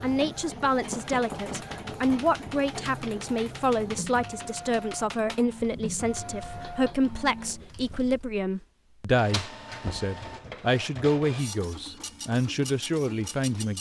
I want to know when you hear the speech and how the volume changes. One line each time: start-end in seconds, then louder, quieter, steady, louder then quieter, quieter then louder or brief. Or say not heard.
0.0-13.7 steady.